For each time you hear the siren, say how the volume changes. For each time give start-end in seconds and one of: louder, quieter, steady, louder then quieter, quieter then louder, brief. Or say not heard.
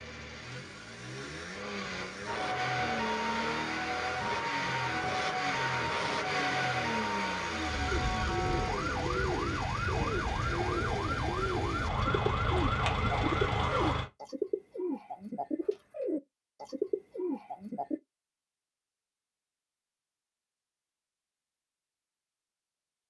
2.2-13.9 steady.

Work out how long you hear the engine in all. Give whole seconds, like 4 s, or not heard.
14 s.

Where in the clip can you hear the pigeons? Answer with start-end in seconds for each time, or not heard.
7.9-18.0.